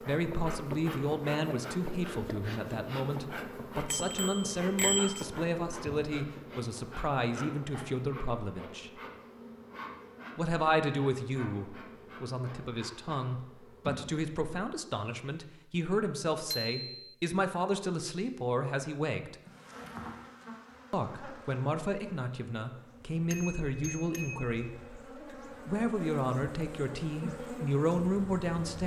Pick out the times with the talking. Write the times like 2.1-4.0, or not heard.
0.0-8.9, 10.3-19.4, 20.9-28.8.